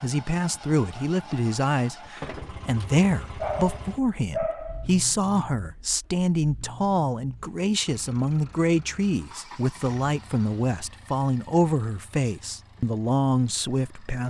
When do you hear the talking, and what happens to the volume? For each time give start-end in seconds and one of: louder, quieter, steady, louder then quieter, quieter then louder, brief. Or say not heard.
0.0-14.2 steady.